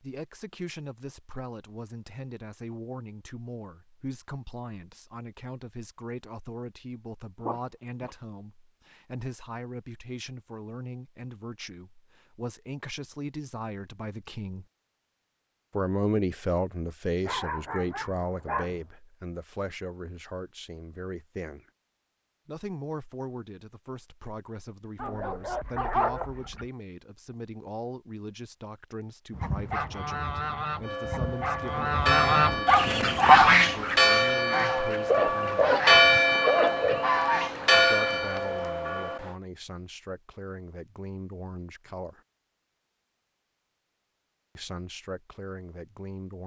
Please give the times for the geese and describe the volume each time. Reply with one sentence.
The geese can be heard from 29.3 to 38.6 s, getting louder then quieter.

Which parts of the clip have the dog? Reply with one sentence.
You can hear the dog from 7.4 to 8.2 s, from 17.2 to 18.9 s, from 24.9 to 26.6 s and from 35.0 to 37.0 s.